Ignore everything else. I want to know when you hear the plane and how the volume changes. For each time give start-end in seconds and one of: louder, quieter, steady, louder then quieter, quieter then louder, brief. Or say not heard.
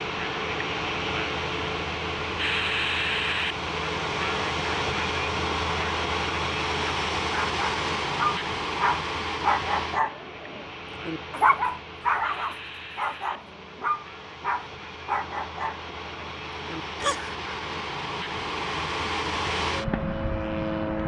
0.0-21.0 quieter then louder.